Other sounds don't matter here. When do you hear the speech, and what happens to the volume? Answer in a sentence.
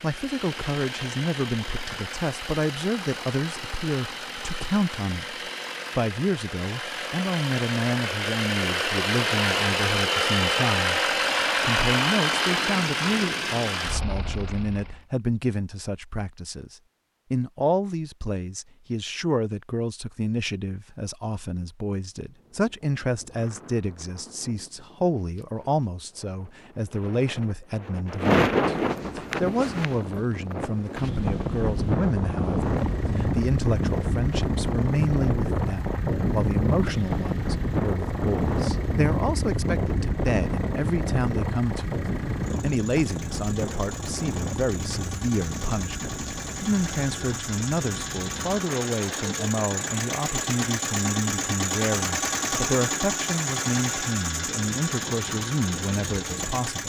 The speech can be heard from 0.0 to 56.8 s, at a steady volume.